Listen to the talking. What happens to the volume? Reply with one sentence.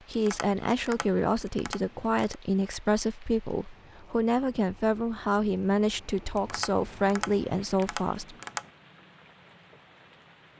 The loudness of the talking stays about the same.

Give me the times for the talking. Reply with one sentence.
The talking can be heard from 0.1 to 8.3 s.